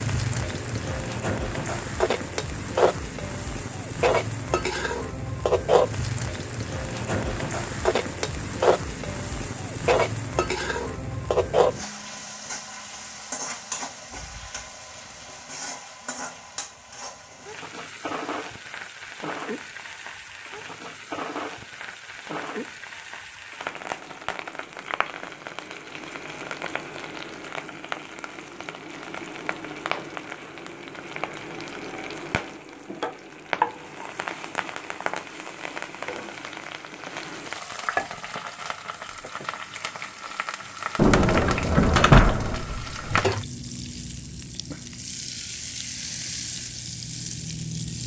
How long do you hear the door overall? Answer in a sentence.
You can hear the door for 2 seconds altogether.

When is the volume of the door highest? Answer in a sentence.
The volume of the door peaks at 42 seconds.